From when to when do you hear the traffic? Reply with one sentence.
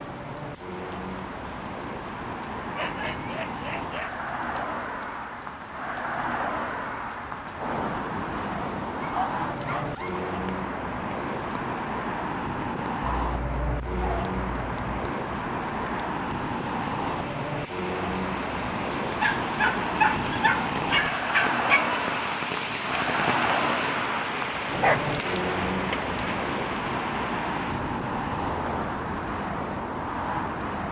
You can hear the traffic from 0.0 to 30.8 s.